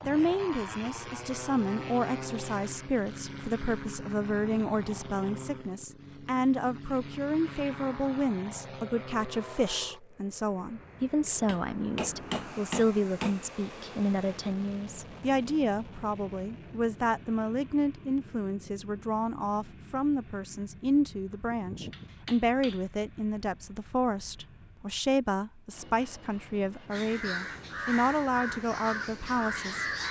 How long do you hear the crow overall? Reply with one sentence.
You can hear the crow for 3 seconds altogether.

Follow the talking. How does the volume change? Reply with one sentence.
The loudness of the talking stays about the same.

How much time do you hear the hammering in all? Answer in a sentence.
The hammering can be heard for 3 seconds in total.